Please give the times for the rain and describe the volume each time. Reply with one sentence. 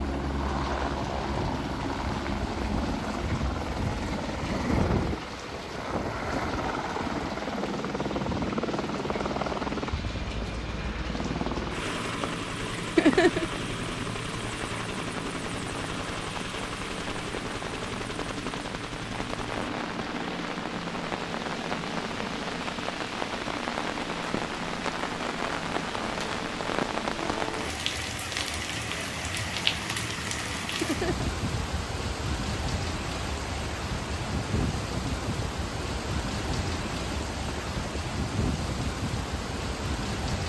The rain can be heard from 0.0 to 40.4 s, getting louder.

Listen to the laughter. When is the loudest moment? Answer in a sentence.
The loudest moment of the laughter is at 13 seconds.